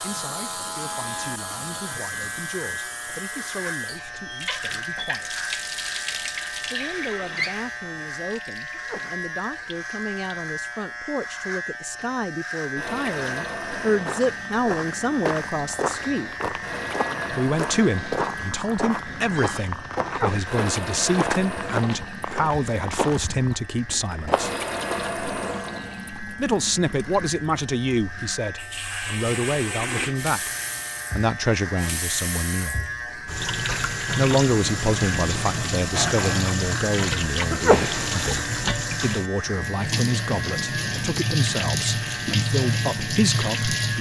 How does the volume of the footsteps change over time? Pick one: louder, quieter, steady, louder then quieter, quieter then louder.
steady.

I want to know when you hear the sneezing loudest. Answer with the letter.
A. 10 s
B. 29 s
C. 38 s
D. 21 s
C.